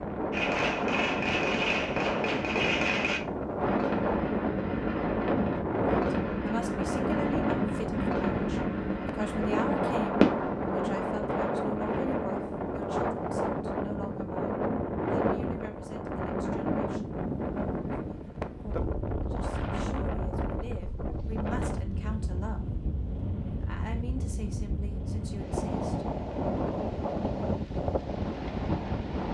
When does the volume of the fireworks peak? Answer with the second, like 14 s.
10 s.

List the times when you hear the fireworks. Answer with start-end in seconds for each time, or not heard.
0.3-10.6.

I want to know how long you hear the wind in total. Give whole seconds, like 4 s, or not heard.
29 s.